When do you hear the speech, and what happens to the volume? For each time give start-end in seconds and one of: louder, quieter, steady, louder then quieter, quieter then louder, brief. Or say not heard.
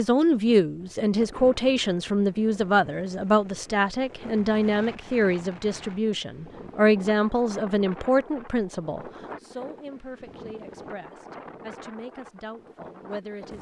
0.0-13.5 quieter.